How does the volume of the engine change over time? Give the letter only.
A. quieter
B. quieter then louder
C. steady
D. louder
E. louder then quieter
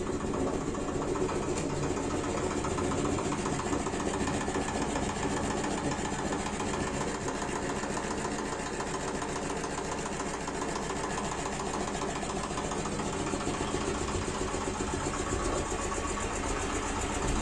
C.